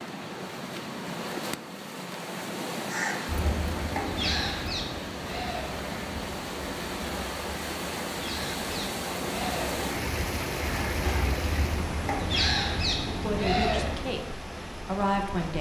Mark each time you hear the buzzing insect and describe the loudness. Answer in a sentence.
You can't hear the buzzing insect here.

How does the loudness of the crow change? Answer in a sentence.
The volume of the crow goes down, then up.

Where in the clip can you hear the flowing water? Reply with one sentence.
You can hear the flowing water from 0.0 to 15.5 s.